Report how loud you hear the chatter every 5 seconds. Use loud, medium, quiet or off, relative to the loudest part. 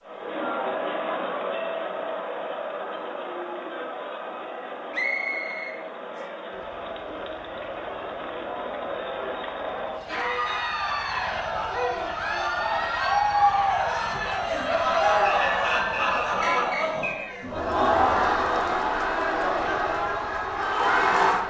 medium, medium, loud, loud, loud.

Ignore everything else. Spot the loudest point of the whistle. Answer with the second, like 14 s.
5 s.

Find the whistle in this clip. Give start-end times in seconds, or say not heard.
4.9-6.2, 15.2-17.3.